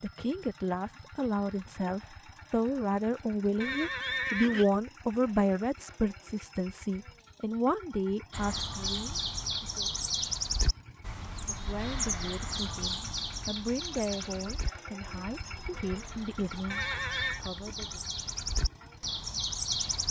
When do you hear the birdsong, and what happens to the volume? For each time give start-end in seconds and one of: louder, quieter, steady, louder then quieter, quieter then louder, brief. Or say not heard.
8.3-20.0 quieter then louder.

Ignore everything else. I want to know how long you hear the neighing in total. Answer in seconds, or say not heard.
2 s.